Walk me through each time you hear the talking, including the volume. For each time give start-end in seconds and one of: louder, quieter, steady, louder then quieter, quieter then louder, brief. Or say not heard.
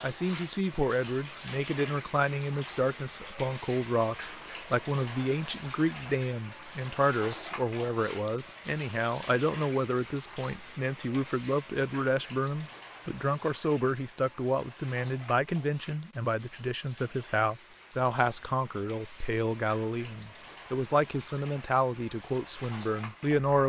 0.0-23.6 steady.